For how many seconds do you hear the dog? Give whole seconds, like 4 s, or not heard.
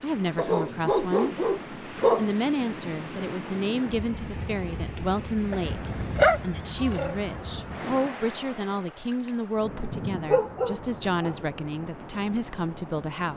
5 s.